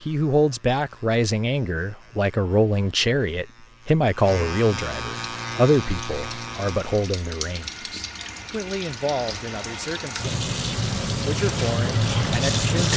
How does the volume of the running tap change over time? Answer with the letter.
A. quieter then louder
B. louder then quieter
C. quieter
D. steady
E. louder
E.